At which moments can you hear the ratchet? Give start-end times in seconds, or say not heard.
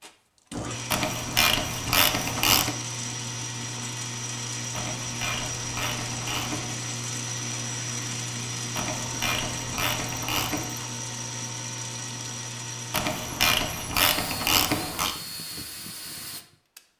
0.9-2.8, 4.7-6.8, 8.8-10.8, 12.9-15.2.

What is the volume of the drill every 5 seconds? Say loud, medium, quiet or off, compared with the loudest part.
loud, loud, loud, medium.